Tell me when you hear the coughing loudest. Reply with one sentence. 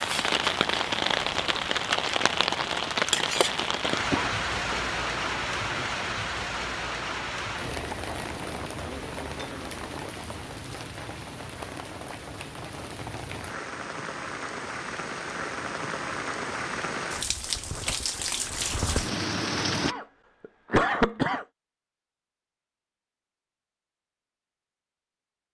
The volume of the coughing peaks at 21 seconds.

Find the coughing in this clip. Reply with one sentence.
You can hear the coughing from 4.1 to 4.8 s and from 19.8 to 21.4 s.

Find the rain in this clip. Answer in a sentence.
The rain can be heard from 0.0 to 19.9 s.